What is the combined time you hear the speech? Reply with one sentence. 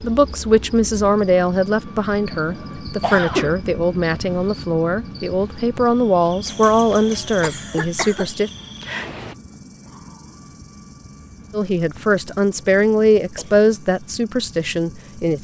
You can hear the speech for 12 seconds altogether.